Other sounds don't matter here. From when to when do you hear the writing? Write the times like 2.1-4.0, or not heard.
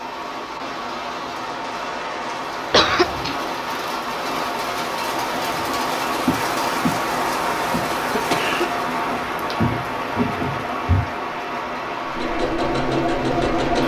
not heard.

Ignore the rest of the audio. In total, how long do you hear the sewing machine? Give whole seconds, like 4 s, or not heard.
2 s.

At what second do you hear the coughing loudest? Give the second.
3 s.